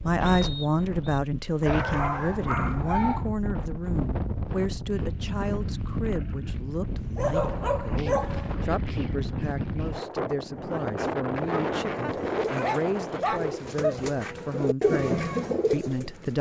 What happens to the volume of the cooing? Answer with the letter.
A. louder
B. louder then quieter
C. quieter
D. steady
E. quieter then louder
A.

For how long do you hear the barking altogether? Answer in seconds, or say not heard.
5 s.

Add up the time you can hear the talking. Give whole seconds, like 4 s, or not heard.
16 s.